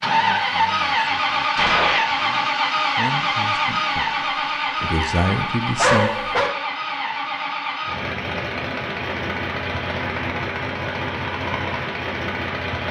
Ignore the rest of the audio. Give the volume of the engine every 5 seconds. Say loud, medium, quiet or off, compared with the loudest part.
loud, medium, medium.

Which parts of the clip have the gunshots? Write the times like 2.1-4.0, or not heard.
1.6-2.0.